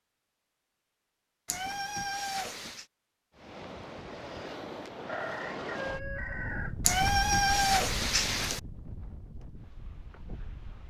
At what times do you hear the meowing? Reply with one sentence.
The meowing can be heard from 1.4 to 2.9 s and from 6.8 to 8.6 s.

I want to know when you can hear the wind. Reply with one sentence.
The wind can be heard from 3.4 to 10.8 s.